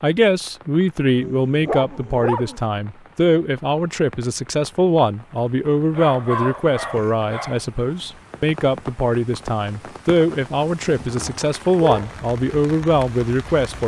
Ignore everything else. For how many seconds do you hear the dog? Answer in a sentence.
The dog can be heard for 4 seconds in total.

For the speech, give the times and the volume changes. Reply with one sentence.
You can hear the speech from 0.0 to 13.8 s, at a steady volume.